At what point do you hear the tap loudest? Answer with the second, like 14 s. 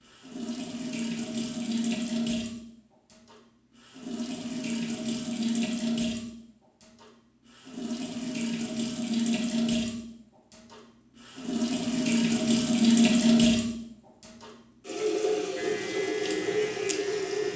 13 s.